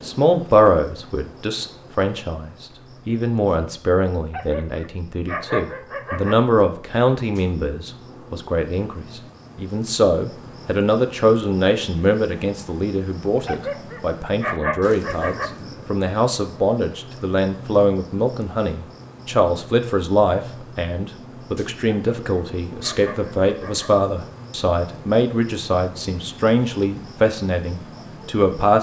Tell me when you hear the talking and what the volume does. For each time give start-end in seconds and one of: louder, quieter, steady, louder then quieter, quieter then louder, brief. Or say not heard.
0.0-28.7 steady.